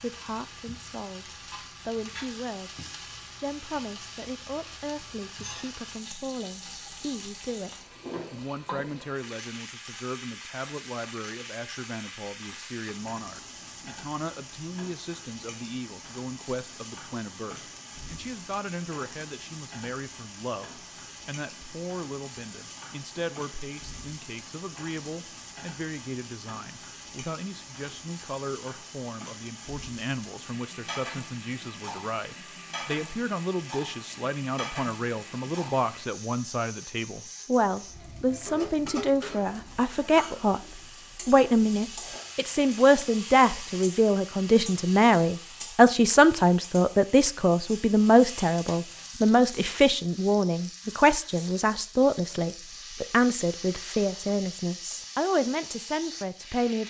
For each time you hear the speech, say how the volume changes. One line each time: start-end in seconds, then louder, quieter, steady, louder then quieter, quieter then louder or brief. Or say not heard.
0.0-56.8 louder.